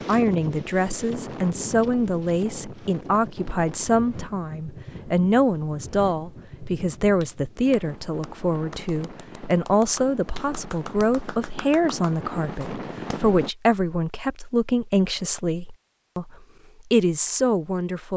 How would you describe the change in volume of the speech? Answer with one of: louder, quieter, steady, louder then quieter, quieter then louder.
steady.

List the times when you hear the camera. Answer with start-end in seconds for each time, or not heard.
not heard.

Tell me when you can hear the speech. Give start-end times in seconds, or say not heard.
0.1-18.1.